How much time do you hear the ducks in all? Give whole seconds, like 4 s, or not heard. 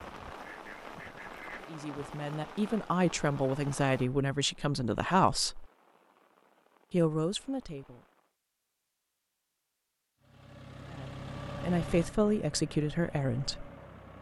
2 s.